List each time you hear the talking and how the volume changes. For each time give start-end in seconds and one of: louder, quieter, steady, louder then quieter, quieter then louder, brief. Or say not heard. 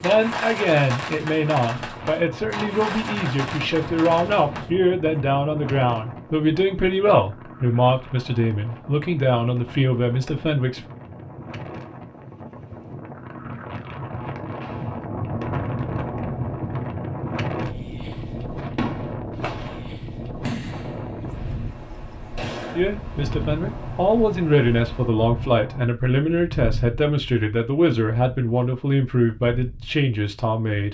0.0-10.8 steady
22.8-30.8 steady.